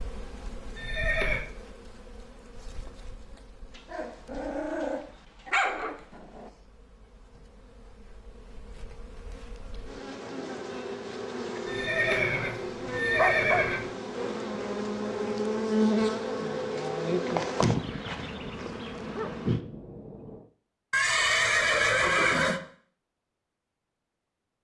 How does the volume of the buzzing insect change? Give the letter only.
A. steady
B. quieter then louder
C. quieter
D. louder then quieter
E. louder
B.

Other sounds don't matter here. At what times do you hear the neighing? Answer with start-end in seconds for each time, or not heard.
0.8-1.4, 11.7-13.9, 20.9-22.6.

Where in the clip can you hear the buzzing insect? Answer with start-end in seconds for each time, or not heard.
0.0-19.6.